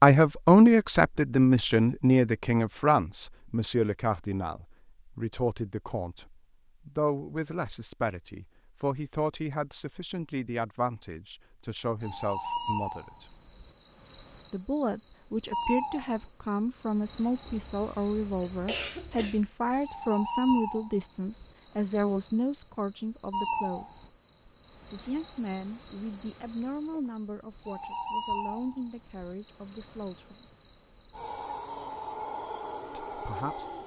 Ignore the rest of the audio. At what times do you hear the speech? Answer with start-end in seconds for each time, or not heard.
0.0-13.3, 14.5-24.1, 24.9-30.4, 33.0-33.6.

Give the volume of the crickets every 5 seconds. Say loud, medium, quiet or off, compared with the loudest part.
off, off, loud, loud, loud, loud, loud.